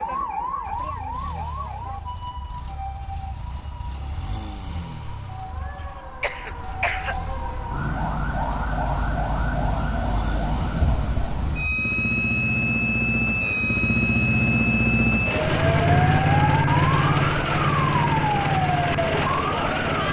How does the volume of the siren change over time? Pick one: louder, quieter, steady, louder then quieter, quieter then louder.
louder.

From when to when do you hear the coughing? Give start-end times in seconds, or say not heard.
5.8-7.3.